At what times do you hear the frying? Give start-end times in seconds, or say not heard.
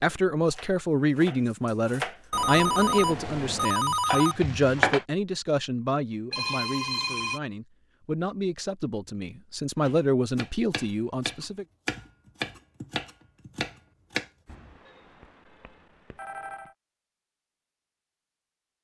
3.0-5.0.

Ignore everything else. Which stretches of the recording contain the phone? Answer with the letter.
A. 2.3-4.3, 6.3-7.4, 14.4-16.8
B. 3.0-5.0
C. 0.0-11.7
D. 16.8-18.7
A.